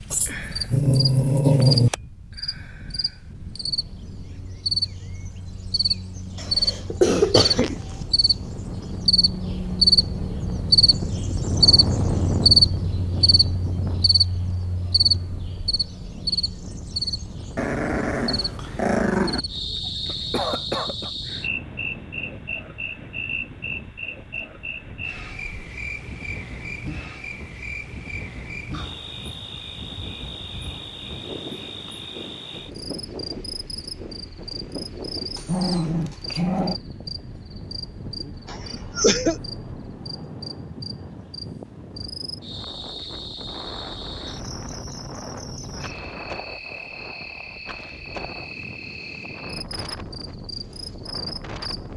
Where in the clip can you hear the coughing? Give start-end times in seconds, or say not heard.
6.3-8.1, 20.1-21.1, 38.5-39.4.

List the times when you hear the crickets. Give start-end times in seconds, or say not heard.
0.0-51.9.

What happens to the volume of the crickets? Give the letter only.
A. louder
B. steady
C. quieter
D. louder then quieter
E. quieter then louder
C.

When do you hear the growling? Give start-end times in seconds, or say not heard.
0.1-1.9, 17.6-19.4, 35.4-36.8.